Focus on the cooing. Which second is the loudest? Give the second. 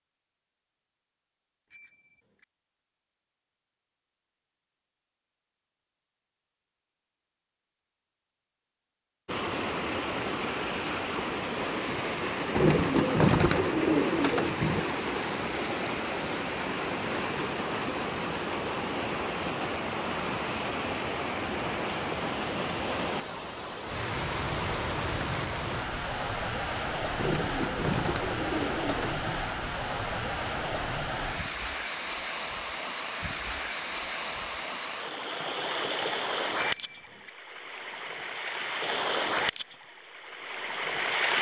13 s.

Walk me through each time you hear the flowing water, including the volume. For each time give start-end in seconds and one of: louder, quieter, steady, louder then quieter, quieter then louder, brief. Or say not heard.
9.2-41.3 steady.